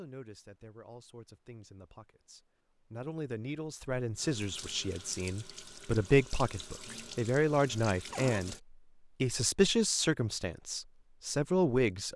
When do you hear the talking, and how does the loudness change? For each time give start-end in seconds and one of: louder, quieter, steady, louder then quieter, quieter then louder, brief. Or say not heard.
0.0-12.1 louder.